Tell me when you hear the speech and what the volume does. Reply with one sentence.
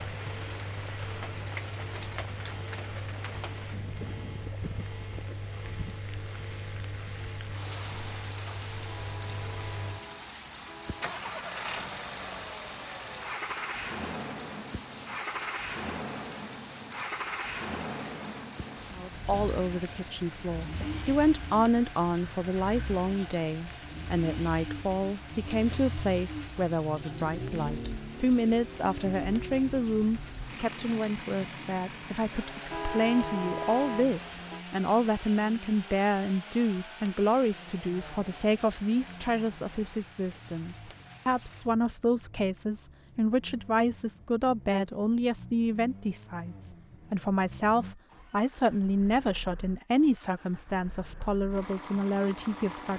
You can hear the speech from 18.9 to 52.9 s, at a steady volume.